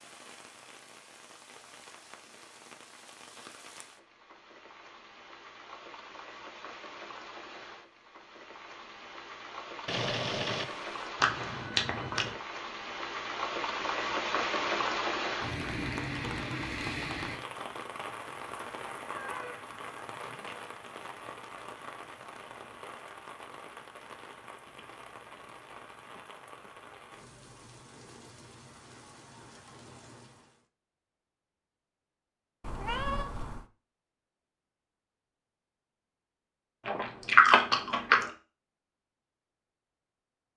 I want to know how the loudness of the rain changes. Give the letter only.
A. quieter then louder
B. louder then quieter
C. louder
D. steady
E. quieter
B.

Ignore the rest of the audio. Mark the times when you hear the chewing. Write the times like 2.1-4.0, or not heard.
11.2-12.3, 36.9-38.3.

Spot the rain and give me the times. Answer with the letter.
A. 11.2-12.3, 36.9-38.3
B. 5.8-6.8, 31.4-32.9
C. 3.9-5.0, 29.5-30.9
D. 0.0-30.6
D.